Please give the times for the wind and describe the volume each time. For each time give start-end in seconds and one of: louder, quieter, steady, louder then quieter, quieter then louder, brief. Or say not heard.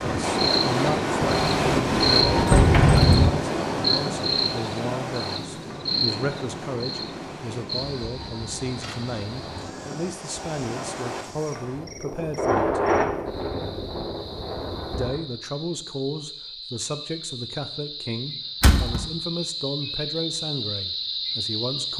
0.0-15.2 quieter then louder.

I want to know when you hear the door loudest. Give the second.
3 s.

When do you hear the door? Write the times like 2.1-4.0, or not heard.
1.2-3.3, 18.6-19.1.